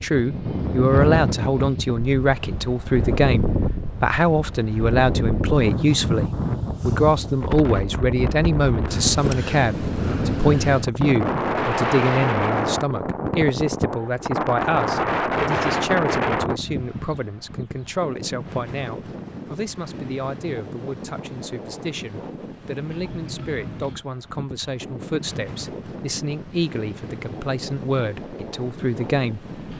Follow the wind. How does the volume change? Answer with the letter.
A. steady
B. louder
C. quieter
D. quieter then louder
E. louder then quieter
C.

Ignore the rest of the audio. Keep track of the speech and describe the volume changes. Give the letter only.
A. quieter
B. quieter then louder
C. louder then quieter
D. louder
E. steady
A.